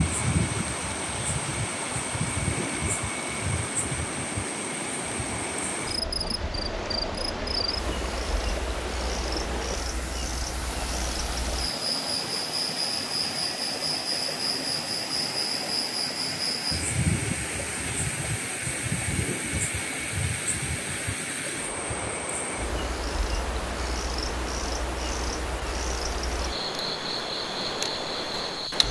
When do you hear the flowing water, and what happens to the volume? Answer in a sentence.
You can hear the flowing water from 0.0 to 28.8 s, at a steady volume.